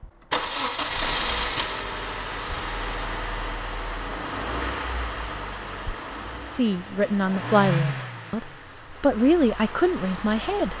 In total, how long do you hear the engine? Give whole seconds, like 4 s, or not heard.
11 s.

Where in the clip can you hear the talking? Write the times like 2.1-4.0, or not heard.
6.5-10.7.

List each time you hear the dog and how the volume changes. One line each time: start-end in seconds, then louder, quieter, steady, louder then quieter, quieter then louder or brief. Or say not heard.
not heard.